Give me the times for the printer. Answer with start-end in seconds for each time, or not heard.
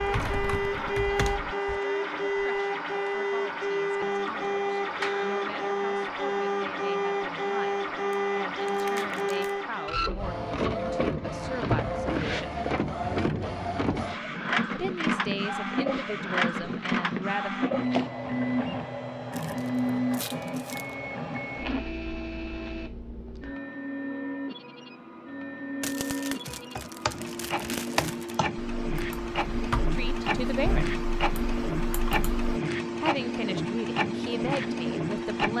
0.0-35.5.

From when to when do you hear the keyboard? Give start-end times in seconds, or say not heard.
0.0-1.8, 26.4-32.6.